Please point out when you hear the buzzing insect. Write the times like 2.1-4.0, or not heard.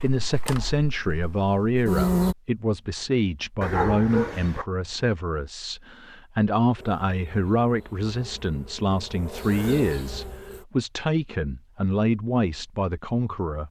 0.0-2.4, 6.8-10.7.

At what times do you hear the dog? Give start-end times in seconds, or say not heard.
3.6-4.7.